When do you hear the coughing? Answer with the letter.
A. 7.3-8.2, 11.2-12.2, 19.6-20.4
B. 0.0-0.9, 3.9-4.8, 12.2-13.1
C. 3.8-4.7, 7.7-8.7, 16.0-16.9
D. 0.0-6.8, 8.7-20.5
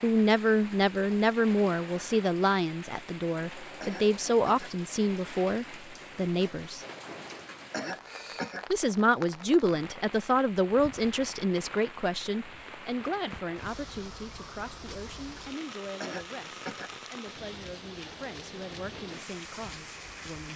C.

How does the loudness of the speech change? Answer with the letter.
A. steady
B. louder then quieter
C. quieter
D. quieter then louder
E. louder
C.